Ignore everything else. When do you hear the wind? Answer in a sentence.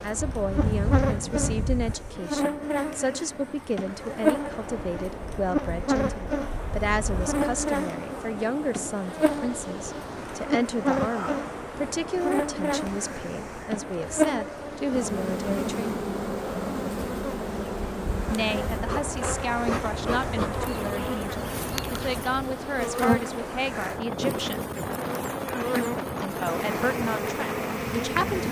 The wind can be heard from 0.0 to 28.4 s.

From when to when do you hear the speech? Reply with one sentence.
The speech can be heard from 0.0 to 16.1 s, from 18.3 to 24.7 s and from 26.2 to 28.4 s.